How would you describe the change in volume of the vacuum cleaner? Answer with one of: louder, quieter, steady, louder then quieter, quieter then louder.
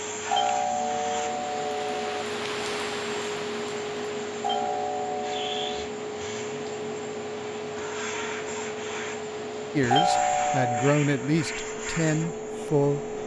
steady.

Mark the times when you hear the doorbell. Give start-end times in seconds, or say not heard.
0.3-2.2, 4.4-5.8, 9.9-10.9.